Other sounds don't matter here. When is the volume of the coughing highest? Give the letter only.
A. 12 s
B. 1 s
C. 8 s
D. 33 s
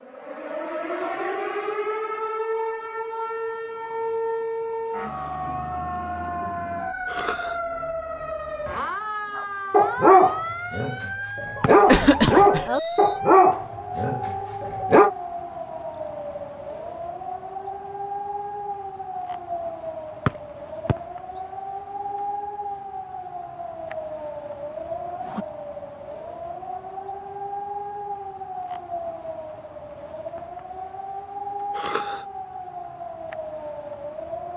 A.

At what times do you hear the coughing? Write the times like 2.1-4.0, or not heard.
7.0-7.5, 11.8-12.7, 31.8-32.2.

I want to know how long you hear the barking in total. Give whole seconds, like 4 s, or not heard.
6 s.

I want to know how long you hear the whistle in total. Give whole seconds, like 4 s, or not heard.
2 s.